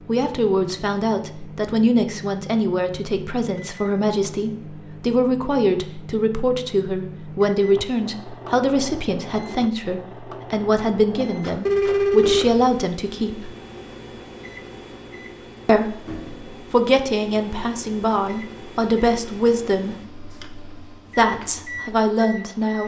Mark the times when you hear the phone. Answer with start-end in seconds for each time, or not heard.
11.7-12.7.